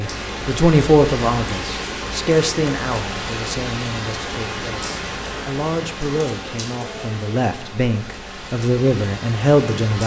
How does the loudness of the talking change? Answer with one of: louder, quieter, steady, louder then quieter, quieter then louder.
quieter then louder.